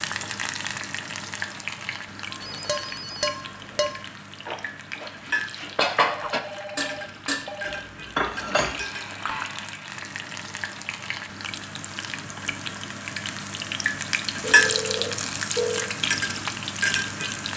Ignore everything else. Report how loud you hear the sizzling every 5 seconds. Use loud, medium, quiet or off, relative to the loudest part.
medium, medium, loud, loud.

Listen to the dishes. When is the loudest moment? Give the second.
6 s.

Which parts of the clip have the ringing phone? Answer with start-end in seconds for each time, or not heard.
2.4-3.9, 6.0-7.8, 14.4-15.9.